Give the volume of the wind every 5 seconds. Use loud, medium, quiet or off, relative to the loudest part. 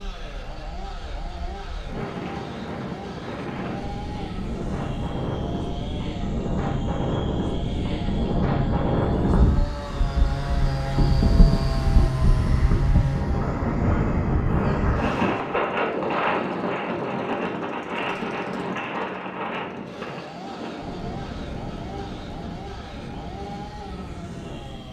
medium, loud, loud, loud, medium.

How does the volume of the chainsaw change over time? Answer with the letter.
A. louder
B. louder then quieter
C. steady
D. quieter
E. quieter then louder
B.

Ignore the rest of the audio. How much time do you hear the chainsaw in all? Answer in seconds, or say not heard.
25 s.